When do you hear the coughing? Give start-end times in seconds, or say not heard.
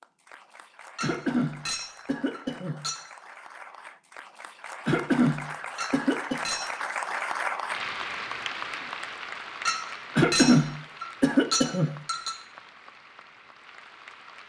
1.0-2.8, 4.8-6.4, 10.2-11.9.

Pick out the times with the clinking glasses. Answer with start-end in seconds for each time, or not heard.
0.9-3.0, 5.8-6.7, 9.7-12.3.